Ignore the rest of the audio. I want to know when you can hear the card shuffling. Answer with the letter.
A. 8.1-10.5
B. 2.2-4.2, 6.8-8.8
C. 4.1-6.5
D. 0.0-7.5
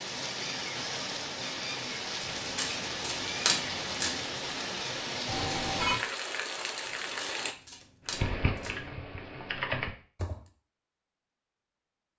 B.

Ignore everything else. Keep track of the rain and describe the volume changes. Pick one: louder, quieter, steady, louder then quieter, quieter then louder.
steady.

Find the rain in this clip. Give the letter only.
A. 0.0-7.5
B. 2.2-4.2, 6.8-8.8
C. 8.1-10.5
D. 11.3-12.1
A.